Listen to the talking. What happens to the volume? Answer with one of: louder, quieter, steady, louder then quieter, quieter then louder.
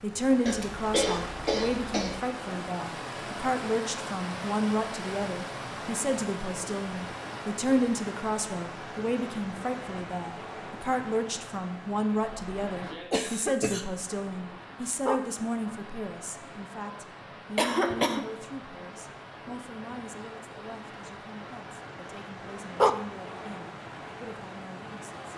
quieter.